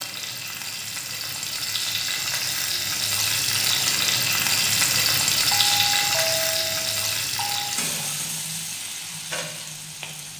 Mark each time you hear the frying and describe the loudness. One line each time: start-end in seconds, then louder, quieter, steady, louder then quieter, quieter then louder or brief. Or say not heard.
0.0-10.3 louder then quieter.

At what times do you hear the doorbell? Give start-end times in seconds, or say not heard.
5.5-7.8.